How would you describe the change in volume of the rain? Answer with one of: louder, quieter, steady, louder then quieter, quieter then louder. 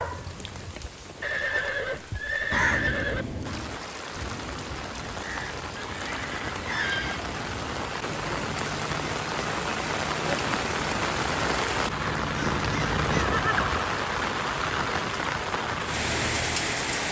louder.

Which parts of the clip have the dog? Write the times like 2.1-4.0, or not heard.
0.0-1.9.